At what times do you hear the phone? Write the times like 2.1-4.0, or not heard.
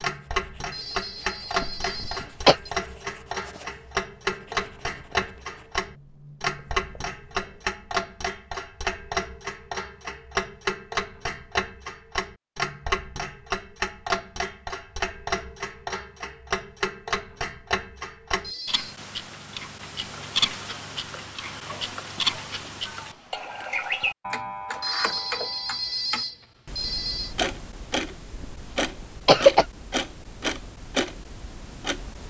0.6-2.7, 18.3-18.9, 24.6-27.4.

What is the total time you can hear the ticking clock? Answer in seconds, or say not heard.
32 s.